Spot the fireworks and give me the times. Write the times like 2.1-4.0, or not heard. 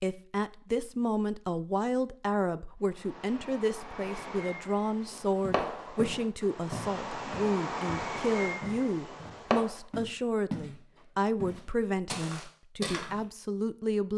2.8-9.8.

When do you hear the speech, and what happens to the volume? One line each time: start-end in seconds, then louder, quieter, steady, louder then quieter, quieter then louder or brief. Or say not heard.
0.0-14.1 steady.